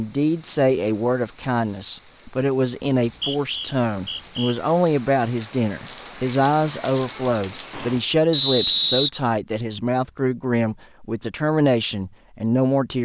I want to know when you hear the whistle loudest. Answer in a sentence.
The volume of the whistle peaks at 9 seconds.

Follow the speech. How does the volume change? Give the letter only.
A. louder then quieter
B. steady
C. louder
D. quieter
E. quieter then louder
B.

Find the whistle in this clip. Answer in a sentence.
You can hear the whistle from 3.0 to 4.5 s and from 8.3 to 9.1 s.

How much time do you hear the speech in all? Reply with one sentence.
The speech can be heard for 13 seconds in total.